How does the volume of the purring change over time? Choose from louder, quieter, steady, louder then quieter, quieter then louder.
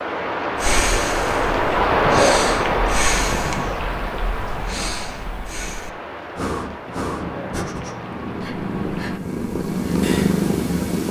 louder.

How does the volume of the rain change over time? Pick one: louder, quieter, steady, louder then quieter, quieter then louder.
quieter.